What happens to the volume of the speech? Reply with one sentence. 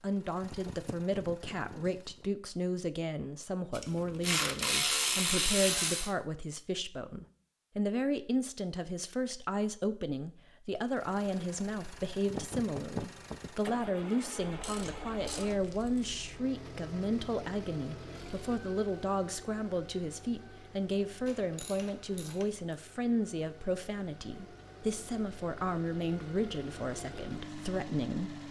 The volume of the speech stays about the same.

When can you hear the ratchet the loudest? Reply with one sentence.
The volume of the ratchet peaks at 5 seconds.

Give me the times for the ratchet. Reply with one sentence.
The ratchet can be heard from 3.7 to 6.2 s, from 14.4 to 16.2 s and from 21.2 to 22.6 s.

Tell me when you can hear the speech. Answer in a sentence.
You can hear the speech from 0.0 to 28.4 s.